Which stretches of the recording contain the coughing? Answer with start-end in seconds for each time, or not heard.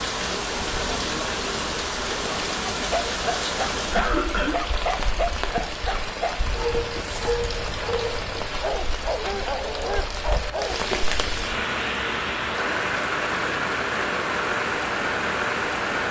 3.9-4.5.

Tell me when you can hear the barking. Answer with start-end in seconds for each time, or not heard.
2.8-10.8.